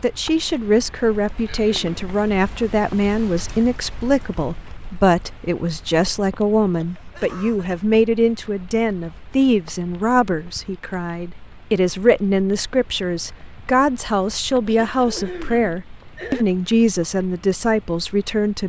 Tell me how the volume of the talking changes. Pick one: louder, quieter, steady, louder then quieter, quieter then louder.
steady.